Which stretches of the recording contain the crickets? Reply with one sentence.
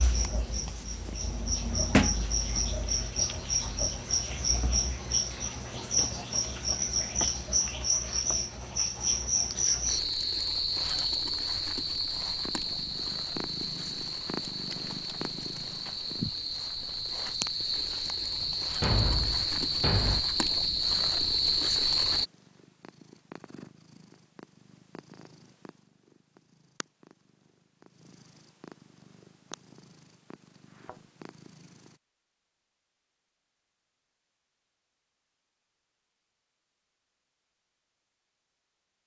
You can hear the crickets from 0.0 to 22.2 s.